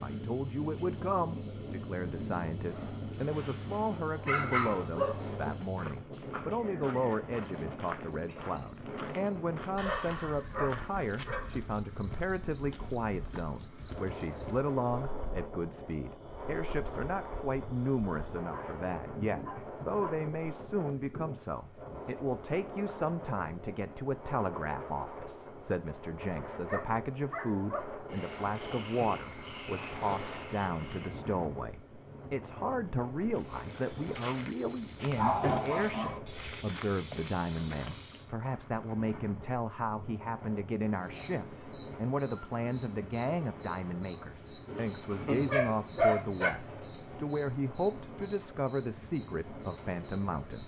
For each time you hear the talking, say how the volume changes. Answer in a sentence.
The talking can be heard from 0.0 to 50.6 s, at a steady volume.